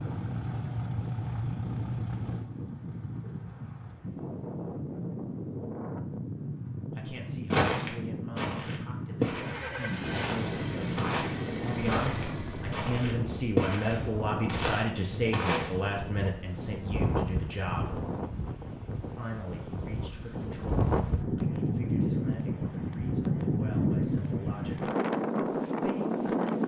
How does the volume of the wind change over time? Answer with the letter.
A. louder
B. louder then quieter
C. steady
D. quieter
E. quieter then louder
A.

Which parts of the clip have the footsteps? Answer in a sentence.
The footsteps can be heard from 7.5 to 15.7 s.